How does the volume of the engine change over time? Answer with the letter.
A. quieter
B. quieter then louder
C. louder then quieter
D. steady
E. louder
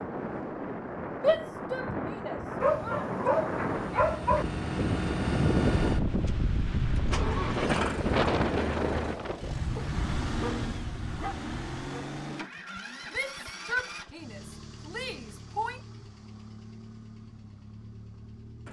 A.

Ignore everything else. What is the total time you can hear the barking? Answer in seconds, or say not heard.
4 s.